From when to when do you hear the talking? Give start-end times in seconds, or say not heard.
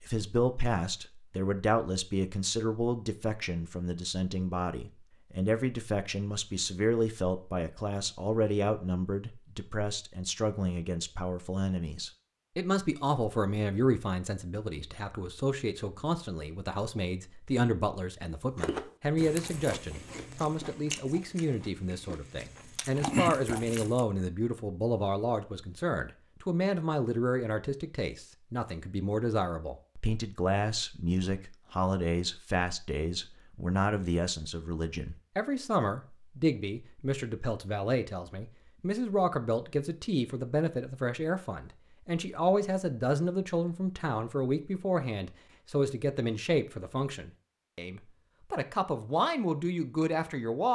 0.0-50.7.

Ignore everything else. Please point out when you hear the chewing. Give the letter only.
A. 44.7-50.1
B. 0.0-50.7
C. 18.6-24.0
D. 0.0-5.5
C.